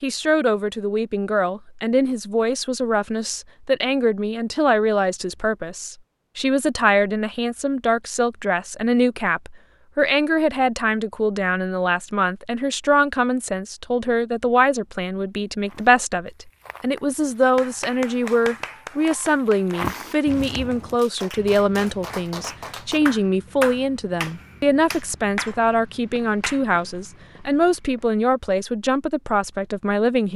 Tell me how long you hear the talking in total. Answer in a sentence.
The talking can be heard for 30 seconds in total.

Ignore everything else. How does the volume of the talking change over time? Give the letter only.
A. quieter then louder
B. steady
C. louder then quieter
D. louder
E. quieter
B.